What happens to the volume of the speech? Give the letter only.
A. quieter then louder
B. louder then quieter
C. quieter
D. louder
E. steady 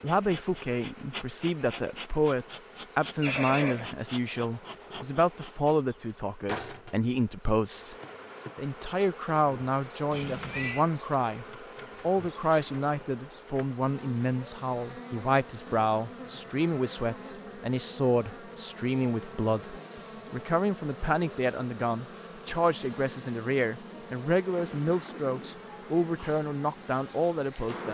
E.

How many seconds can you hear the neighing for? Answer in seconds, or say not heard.
3 s.